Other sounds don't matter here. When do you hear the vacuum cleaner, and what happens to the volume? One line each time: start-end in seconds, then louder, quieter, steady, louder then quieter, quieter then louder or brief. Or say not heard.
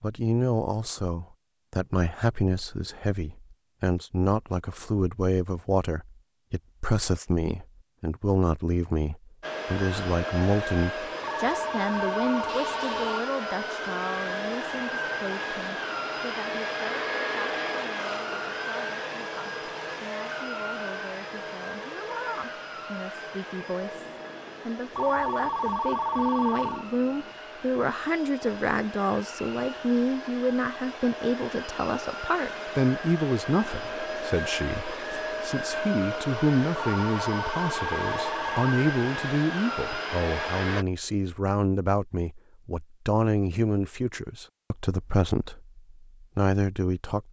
9.4-40.9 quieter then louder.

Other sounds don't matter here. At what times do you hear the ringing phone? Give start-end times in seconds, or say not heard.
11.2-13.2, 24.9-26.9, 36.9-38.6.